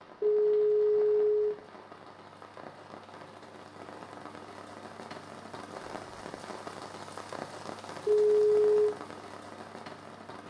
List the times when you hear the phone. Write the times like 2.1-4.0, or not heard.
0.2-1.6, 8.1-8.9.